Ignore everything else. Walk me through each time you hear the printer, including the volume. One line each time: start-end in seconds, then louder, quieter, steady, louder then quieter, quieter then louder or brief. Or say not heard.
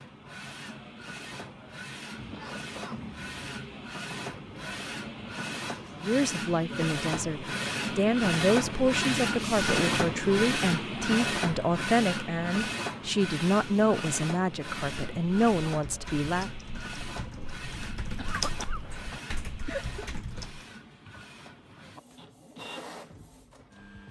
0.0-24.0 louder then quieter.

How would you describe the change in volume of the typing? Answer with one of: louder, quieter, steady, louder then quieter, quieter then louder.
louder then quieter.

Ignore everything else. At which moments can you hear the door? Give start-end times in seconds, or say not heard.
not heard.